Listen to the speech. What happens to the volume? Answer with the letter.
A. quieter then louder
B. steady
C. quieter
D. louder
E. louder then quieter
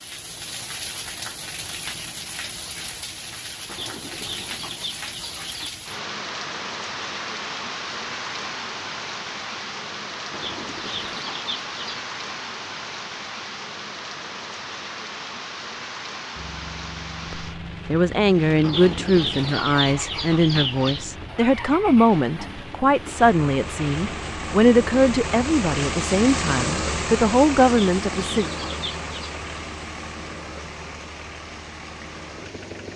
B.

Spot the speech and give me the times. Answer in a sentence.
The speech can be heard from 17.3 to 28.4 s.